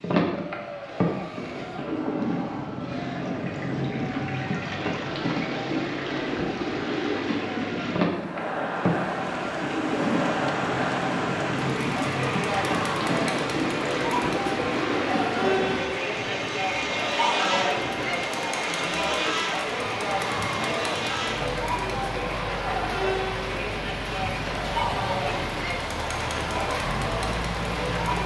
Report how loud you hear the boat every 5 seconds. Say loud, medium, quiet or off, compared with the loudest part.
loud, loud, loud, loud, medium, medium.